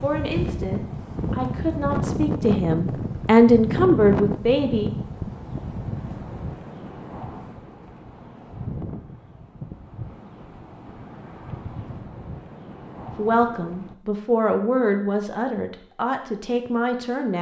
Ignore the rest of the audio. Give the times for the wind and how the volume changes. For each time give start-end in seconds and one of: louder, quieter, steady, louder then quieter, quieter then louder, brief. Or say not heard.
0.0-13.9 quieter.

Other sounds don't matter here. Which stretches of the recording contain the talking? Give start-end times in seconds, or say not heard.
0.0-4.9, 13.2-17.3.